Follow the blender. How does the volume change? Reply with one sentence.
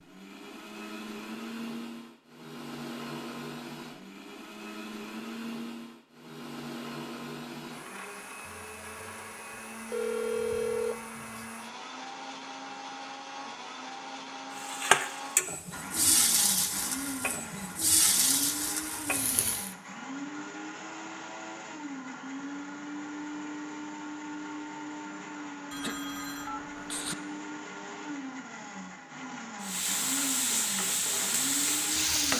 The volume of the blender stays about the same.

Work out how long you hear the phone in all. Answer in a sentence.
The phone can be heard for 3 seconds in total.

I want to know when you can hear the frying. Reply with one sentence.
You can hear the frying from 14.6 to 19.8 s and from 29.6 to 32.3 s.